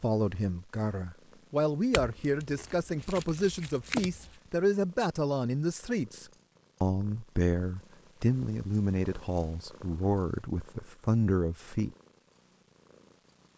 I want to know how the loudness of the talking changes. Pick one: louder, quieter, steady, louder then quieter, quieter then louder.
steady.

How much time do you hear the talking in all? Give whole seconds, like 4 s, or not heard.
12 s.